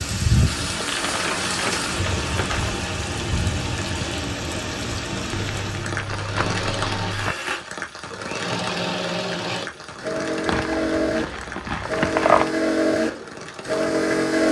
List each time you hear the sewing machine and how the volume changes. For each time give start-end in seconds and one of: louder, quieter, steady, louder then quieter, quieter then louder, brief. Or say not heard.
0.0-14.4 louder.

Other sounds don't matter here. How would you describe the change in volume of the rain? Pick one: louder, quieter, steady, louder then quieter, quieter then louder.
quieter.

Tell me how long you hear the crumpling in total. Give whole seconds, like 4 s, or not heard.
6 s.